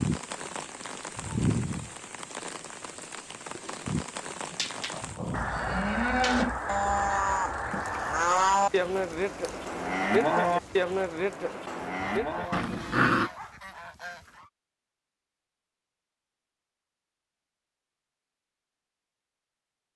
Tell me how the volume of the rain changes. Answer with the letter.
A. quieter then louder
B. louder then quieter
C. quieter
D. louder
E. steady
C.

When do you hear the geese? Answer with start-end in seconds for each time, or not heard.
5.3-8.3, 11.7-14.5.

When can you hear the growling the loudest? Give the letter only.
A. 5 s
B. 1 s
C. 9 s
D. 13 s
D.